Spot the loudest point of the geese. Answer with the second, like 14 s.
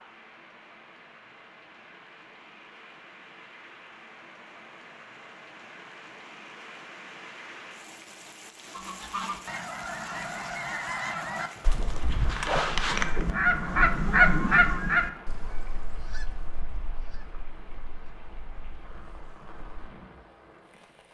14 s.